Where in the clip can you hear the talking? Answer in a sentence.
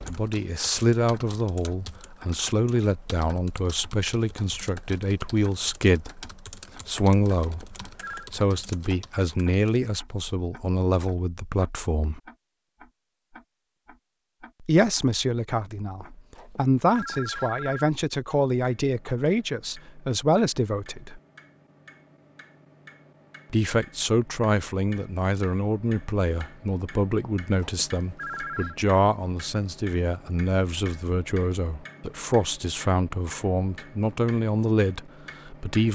The talking can be heard from 0.1 to 12.2 s, from 14.6 to 21.2 s and from 23.5 to 35.9 s.